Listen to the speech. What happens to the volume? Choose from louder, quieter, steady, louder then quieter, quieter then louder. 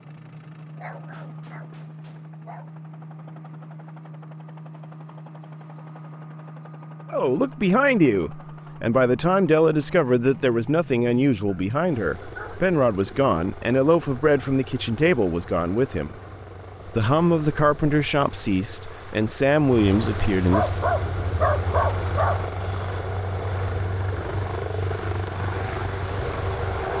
steady.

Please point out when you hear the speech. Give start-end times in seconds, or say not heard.
7.1-16.1, 16.9-20.8.